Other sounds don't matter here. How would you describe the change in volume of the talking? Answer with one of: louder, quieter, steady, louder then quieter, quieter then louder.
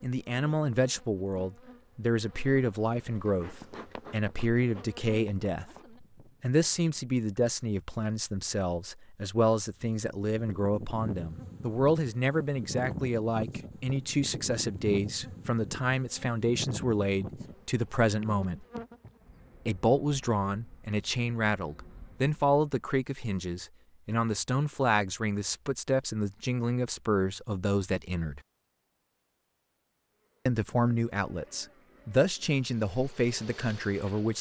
steady.